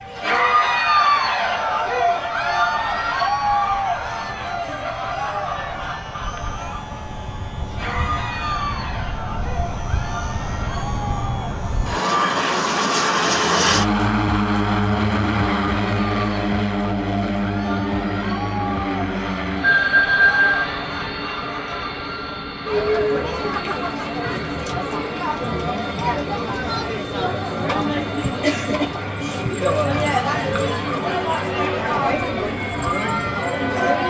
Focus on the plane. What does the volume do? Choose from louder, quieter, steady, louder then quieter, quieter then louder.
louder then quieter.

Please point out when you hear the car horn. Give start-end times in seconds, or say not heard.
not heard.